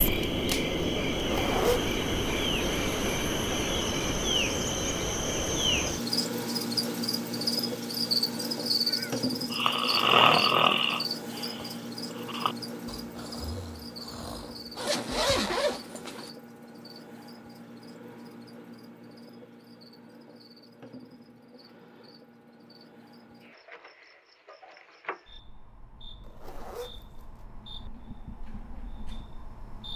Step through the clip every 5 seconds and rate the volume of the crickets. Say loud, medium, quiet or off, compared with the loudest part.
loud, loud, medium, quiet, quiet, quiet.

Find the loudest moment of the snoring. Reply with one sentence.
The loudest moment of the snoring is at 10 seconds.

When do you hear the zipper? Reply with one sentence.
You can hear the zipper from 1.1 to 1.9 s, from 14.8 to 16.3 s and from 26.2 to 27.2 s.